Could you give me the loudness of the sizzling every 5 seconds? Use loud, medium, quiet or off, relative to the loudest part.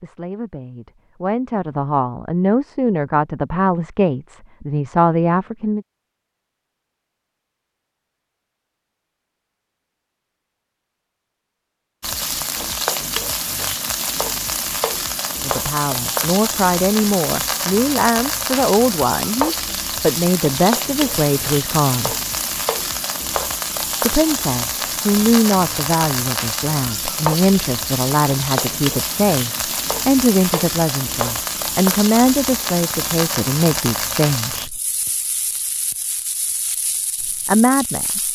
off, off, loud, loud, loud, loud, loud, medium.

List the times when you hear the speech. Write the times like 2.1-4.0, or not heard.
0.0-5.8, 15.4-22.1, 24.0-34.8, 37.2-38.2.